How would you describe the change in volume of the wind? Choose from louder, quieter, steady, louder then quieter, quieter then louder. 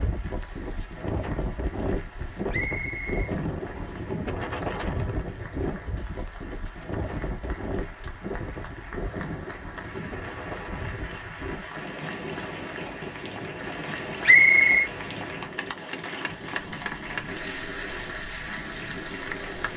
quieter.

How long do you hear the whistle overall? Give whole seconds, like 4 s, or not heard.
2 s.